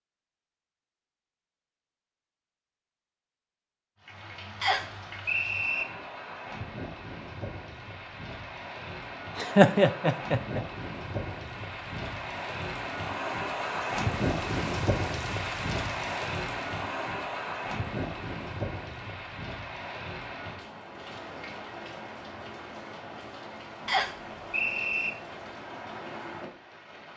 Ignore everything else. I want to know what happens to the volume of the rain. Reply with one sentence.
The loudness of the rain goes up, then down.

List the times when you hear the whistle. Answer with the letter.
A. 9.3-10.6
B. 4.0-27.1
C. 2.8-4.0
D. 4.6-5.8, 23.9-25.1
D.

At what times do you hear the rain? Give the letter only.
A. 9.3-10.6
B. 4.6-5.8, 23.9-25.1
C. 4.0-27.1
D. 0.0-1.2
C.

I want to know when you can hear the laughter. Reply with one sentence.
The laughter can be heard from 9.3 to 10.6 s.